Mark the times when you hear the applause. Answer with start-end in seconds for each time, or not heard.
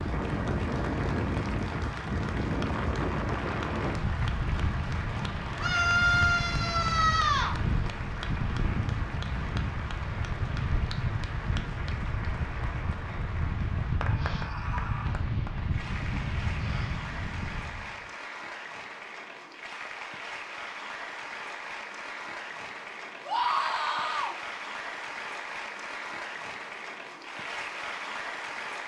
0.0-28.8.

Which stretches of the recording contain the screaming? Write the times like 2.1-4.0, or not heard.
5.5-7.5, 14.1-15.2, 23.2-24.4.